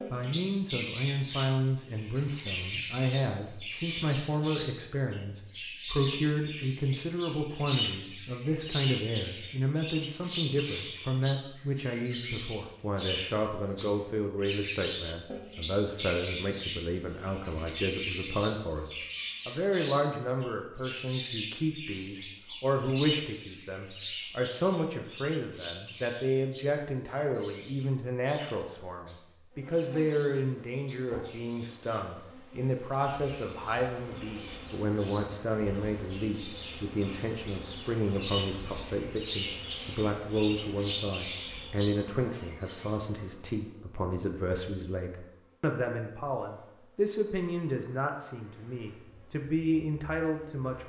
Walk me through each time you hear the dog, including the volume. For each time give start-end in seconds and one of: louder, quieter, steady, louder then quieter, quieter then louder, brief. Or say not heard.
not heard.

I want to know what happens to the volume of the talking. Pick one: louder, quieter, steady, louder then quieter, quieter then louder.
steady.